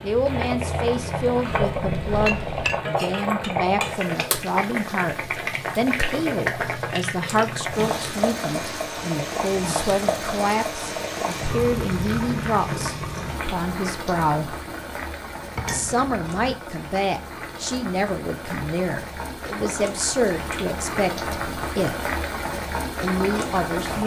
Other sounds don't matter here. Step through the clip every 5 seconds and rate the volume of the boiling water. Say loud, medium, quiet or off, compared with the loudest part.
loud, loud, loud, medium, loud.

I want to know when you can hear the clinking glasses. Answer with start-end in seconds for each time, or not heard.
1.7-2.8, 15.6-16.6.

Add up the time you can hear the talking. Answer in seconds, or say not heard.
22 s.